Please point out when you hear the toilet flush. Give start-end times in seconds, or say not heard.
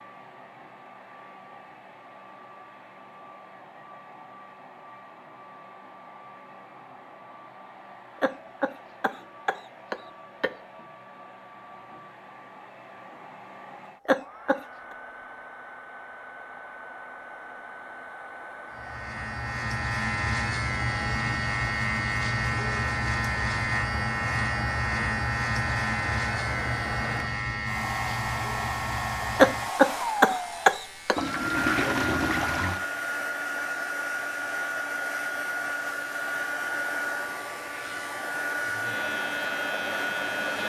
31.1-32.9.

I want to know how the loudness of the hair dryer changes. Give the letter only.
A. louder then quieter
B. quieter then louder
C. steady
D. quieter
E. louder
E.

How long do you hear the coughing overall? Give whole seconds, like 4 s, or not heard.
5 s.